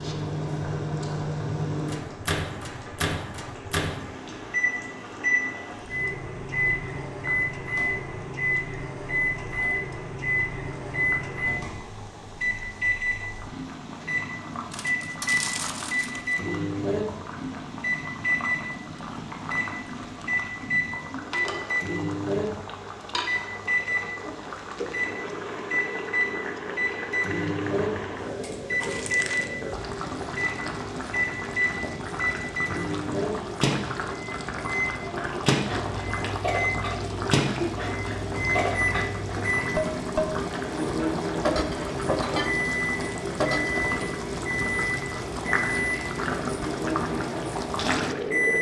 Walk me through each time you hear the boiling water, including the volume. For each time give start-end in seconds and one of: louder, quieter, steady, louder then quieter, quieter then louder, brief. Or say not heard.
0.0-48.5 louder.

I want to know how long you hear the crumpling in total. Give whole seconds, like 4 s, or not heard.
3 s.